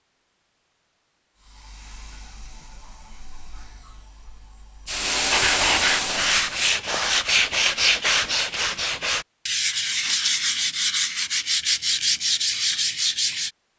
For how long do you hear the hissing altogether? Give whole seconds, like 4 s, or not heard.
5 s.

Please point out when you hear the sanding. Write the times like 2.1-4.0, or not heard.
5.3-13.5.